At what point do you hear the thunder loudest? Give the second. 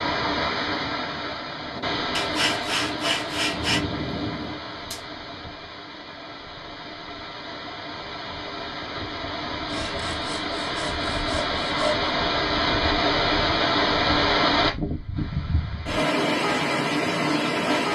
4 s.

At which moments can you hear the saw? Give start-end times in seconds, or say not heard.
2.1-3.8, 9.7-12.1.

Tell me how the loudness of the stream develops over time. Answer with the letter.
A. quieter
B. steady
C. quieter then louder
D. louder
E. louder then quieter
C.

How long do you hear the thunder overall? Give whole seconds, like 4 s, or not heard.
3 s.